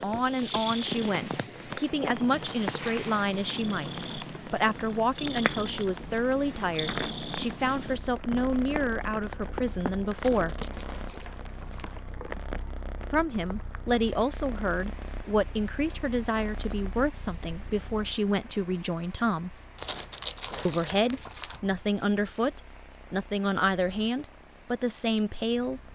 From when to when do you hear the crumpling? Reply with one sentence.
You can hear the crumpling from 2.4 to 4.2 s, from 10.1 to 11.9 s and from 19.8 to 21.6 s.